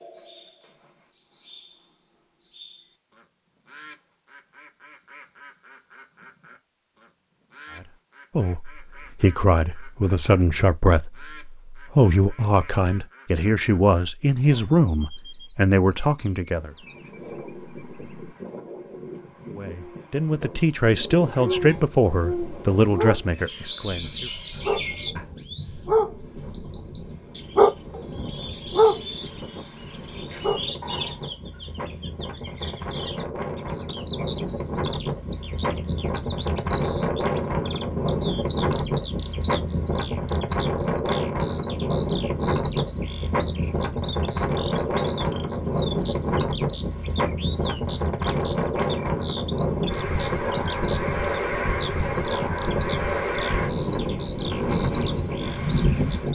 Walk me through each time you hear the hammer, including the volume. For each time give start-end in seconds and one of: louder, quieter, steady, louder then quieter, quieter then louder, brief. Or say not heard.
not heard.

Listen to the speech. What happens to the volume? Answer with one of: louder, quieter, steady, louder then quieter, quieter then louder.
steady.